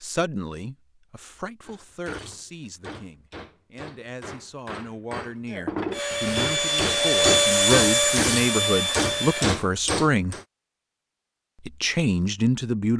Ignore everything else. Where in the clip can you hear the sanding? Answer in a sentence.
The sanding can't be heard in this clip.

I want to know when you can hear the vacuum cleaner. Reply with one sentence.
You can hear the vacuum cleaner from 5.9 to 9.6 s.